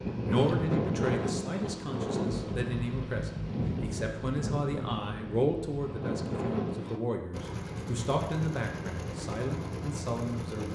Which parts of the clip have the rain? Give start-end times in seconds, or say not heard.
0.0-7.0.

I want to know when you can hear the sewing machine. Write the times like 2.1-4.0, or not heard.
7.3-10.7.